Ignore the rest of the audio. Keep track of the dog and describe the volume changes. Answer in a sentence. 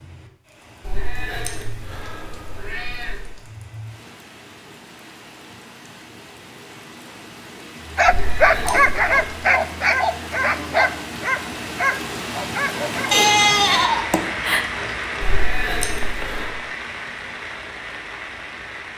The volume of the dog goes down.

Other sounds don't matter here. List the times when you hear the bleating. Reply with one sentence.
The bleating can be heard from 13.1 to 14.7 s.